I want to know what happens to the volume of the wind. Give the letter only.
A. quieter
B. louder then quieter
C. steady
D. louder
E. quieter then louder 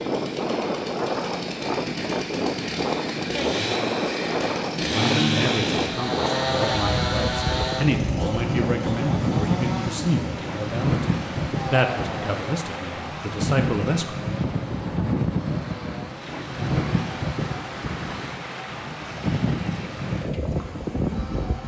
C.